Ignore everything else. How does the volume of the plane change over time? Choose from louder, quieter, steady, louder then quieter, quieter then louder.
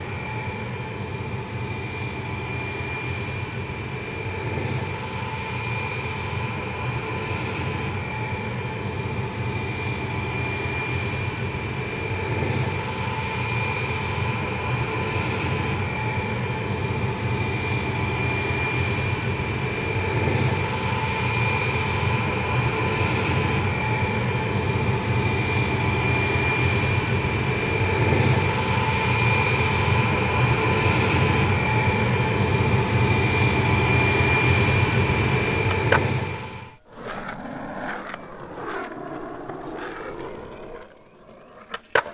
louder.